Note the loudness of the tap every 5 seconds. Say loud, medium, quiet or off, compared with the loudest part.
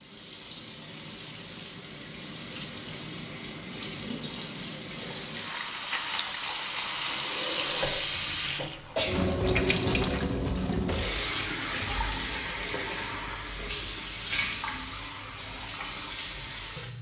medium, loud, loud, medium.